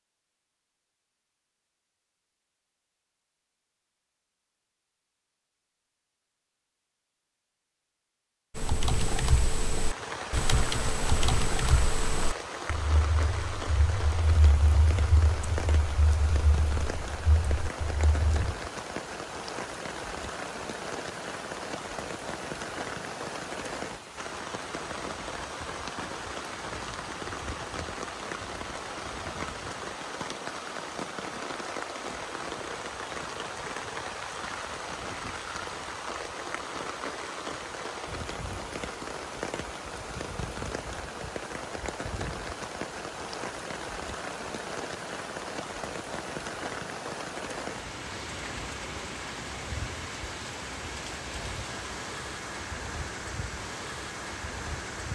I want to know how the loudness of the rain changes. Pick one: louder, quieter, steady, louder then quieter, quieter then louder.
steady.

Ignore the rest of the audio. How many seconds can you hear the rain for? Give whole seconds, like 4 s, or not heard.
45 s.